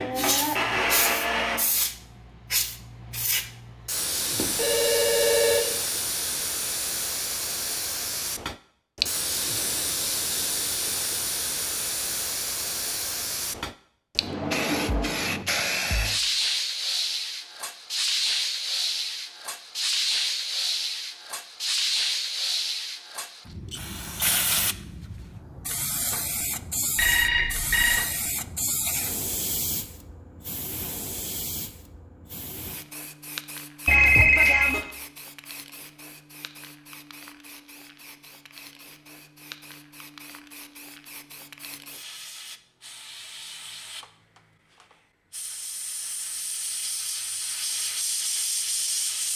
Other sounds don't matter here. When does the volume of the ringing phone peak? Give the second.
34 s.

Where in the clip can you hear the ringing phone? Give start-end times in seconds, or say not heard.
4.3-5.7, 26.9-28.1, 33.9-34.8.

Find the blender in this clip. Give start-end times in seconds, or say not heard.
0.0-1.6.